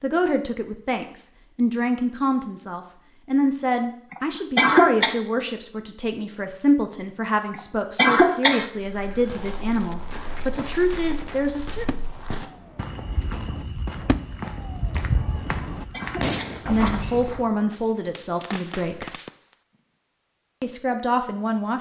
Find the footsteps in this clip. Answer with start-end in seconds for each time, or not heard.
8.8-17.5.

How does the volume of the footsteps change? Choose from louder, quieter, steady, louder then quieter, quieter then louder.
louder.